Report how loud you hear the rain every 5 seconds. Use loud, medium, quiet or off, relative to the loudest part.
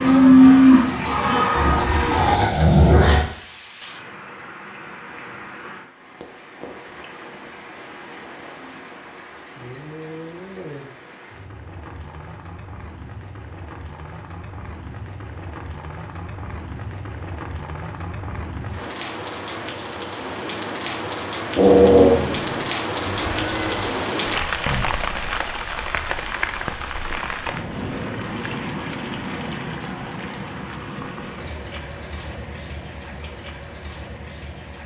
quiet, quiet, quiet, medium, loud, loud, medium.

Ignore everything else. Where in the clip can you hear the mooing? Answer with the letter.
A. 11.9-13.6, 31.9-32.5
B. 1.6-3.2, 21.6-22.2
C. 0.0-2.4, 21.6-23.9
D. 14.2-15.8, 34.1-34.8
C.